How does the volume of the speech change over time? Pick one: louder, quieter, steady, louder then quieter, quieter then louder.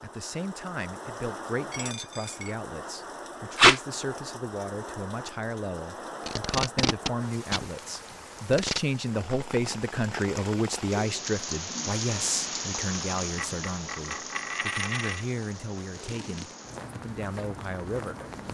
louder then quieter.